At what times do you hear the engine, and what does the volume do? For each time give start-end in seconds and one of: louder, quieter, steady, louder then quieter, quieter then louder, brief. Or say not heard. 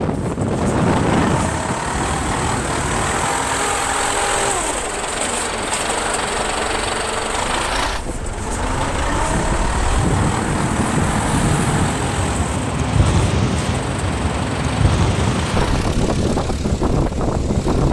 0.0-17.8 quieter.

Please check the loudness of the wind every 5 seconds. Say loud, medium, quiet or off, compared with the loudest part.
loud, medium, loud, loud.